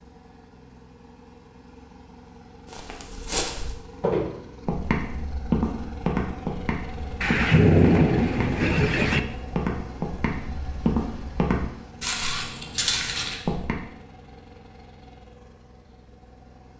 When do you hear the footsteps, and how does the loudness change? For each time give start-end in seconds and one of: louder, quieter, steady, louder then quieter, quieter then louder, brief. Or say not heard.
2.7-13.8 steady.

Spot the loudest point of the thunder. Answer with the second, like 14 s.
8 s.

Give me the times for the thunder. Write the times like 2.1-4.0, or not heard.
7.2-9.2.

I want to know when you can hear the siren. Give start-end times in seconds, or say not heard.
not heard.